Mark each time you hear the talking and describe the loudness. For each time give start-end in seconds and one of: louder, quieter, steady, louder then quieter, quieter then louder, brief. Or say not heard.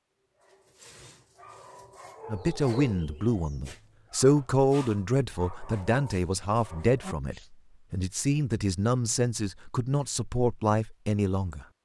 2.2-11.7 steady.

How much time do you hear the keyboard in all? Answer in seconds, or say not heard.
not heard.